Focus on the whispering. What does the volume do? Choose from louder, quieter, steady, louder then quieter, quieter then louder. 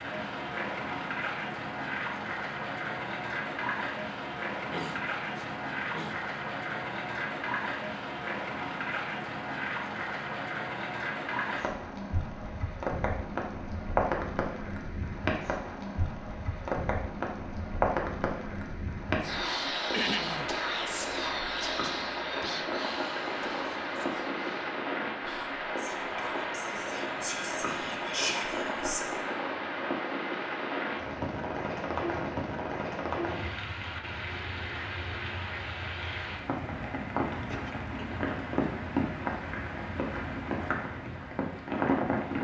quieter then louder.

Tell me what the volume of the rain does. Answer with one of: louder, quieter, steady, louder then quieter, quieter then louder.
steady.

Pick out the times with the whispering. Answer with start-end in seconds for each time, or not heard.
19.2-29.1.